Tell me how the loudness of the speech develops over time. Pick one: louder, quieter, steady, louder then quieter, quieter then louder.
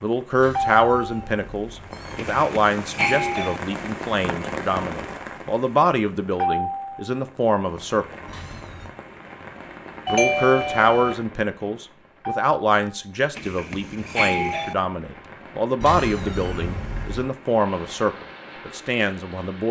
steady.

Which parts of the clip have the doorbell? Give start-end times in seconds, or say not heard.
2.1-3.6, 10.1-11.2, 13.3-14.8.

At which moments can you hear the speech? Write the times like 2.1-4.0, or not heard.
0.0-8.1, 10.1-19.6.